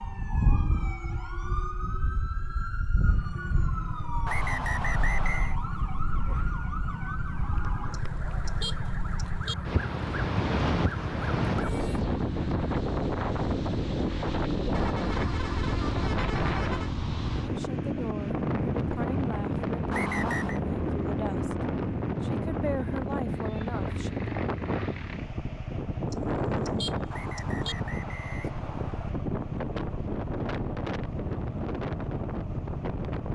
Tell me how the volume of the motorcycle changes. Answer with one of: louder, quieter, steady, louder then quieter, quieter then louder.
steady.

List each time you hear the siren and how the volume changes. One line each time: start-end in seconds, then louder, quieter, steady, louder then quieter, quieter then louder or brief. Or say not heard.
0.0-12.1 steady.